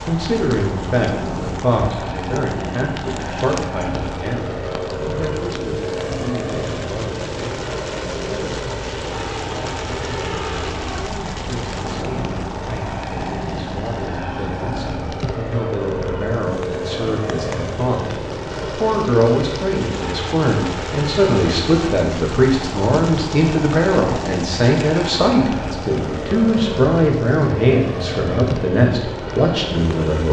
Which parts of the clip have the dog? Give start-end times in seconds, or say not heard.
not heard.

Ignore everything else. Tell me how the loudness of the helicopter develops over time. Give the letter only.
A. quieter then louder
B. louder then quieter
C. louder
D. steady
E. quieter
D.